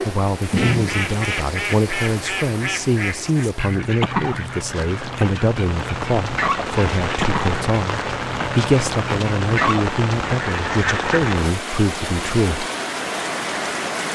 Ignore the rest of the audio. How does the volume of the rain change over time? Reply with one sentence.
The loudness of the rain goes down, then up.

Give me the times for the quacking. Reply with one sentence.
You can hear the quacking from 0.4 to 11.3 s.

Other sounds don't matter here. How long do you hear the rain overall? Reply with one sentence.
The rain can be heard for 14 seconds in total.